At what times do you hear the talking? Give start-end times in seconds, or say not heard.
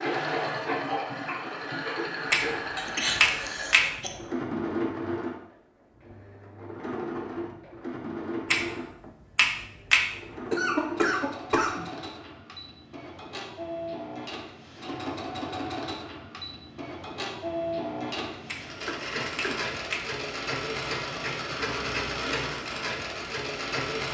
not heard.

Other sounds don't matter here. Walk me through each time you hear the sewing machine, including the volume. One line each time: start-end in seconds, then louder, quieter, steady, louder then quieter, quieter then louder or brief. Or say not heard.
0.0-24.0 quieter then louder.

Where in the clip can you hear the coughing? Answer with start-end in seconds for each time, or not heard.
2.8-4.1, 10.5-11.8, 18.9-19.6.